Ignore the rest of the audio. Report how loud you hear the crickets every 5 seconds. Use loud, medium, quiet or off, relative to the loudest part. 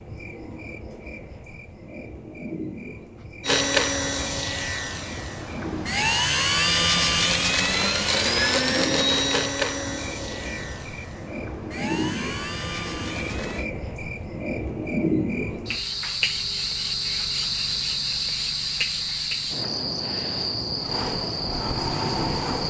quiet, medium, medium, loud, loud.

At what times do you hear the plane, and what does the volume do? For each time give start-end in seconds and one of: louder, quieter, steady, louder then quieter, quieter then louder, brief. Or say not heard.
3.5-13.7 louder then quieter
20.9-22.6 brief.